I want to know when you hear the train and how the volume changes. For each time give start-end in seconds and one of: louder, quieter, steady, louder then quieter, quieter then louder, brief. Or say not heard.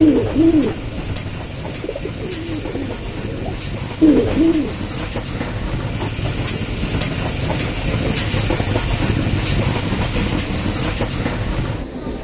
0.0-12.1 louder.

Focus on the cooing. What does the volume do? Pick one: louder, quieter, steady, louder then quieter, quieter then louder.
quieter then louder.